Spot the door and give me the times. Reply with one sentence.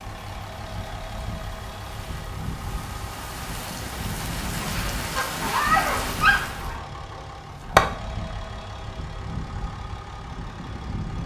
The door can't be heard in this clip.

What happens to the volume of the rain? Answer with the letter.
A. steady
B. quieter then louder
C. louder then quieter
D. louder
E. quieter
D.